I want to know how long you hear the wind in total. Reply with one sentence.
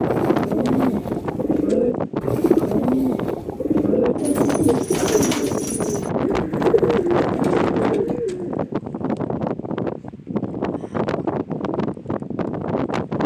You can hear the wind for 13 seconds altogether.